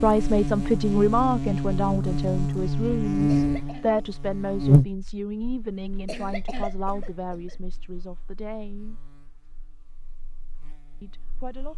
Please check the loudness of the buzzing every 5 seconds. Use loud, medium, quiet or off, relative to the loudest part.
loud, quiet, quiet.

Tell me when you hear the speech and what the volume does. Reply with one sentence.
You can hear the speech from 0.0 to 8.9 s, getting quieter; and briefly from 11.0 to 11.7 s.